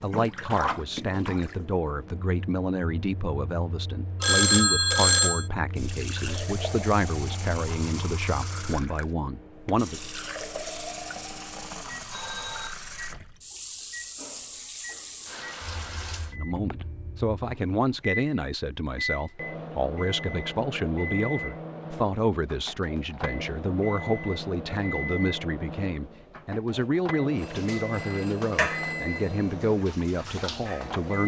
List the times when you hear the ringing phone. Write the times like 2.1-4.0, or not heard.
4.2-5.5, 12.1-12.8, 27.4-29.5.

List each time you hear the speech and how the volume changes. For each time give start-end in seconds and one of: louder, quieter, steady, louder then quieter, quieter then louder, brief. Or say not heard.
0.0-10.1 steady
16.3-31.2 steady.